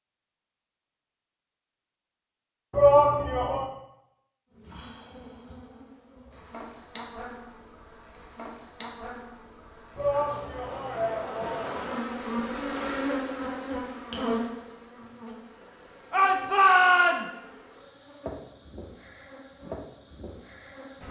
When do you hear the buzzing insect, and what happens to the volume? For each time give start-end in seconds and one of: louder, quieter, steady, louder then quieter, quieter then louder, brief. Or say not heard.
4.5-21.0 louder then quieter.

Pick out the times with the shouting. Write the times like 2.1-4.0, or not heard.
2.7-3.6, 9.9-11.9, 16.1-17.4.